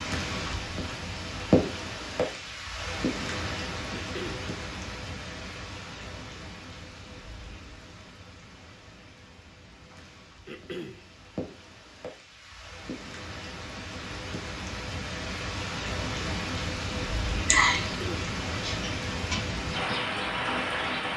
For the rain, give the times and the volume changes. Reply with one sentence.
You can hear the rain from 0.0 to 21.1 s, getting quieter then louder.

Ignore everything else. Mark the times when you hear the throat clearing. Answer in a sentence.
The throat clearing can be heard from 3.9 to 4.5 s, from 10.4 to 11.1 s and from 17.8 to 18.4 s.